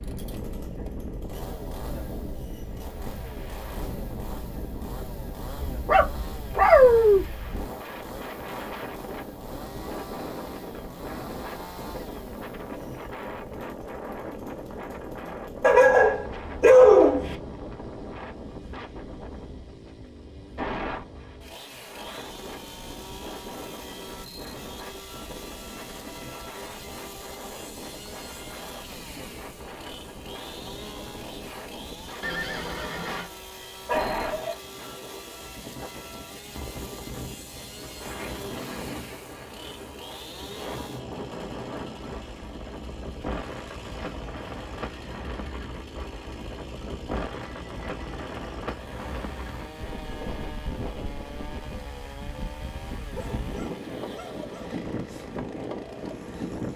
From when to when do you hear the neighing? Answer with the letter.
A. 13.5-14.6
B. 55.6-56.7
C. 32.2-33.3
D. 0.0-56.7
C.